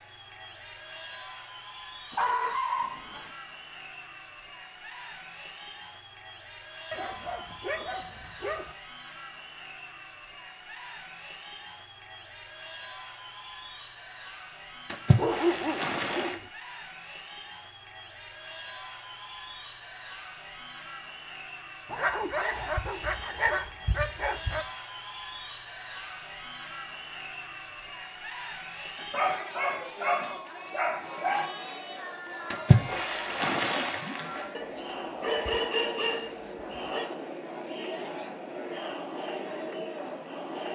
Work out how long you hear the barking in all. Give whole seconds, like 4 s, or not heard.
12 s.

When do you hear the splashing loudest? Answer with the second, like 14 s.
33 s.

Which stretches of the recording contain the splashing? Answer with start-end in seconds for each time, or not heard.
14.8-16.4, 32.5-34.5.